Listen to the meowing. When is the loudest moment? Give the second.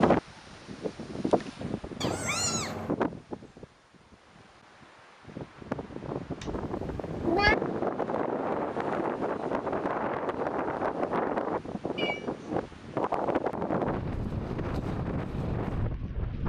7 s.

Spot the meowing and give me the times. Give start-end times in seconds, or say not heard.
2.0-3.0, 6.4-7.5, 11.9-12.5.